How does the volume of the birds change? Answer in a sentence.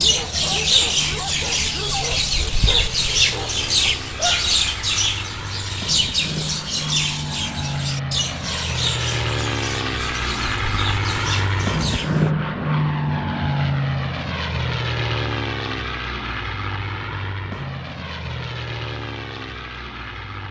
The loudness of the birds goes down.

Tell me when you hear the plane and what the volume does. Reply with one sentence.
You can hear the plane from 0.0 to 20.4 s, getting louder then quieter.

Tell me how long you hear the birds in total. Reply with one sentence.
You can hear the birds for 12 seconds altogether.